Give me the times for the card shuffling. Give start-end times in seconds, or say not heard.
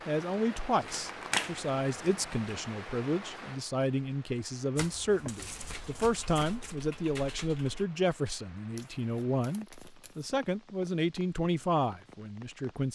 0.8-2.4, 4.8-6.8, 8.8-10.3.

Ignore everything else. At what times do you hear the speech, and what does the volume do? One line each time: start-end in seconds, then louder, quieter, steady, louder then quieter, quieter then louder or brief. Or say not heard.
0.1-12.9 steady.